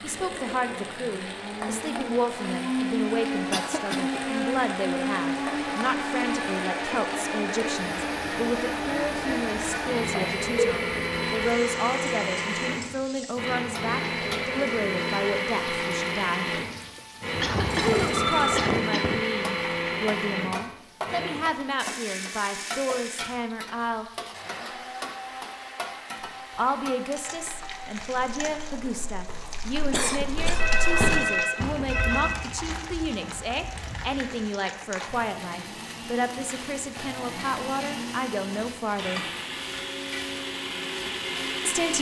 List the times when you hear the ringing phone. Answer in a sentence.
You can hear the ringing phone from 9.7 to 10.7 s, from 17.3 to 18.7 s and from 30.6 to 32.4 s.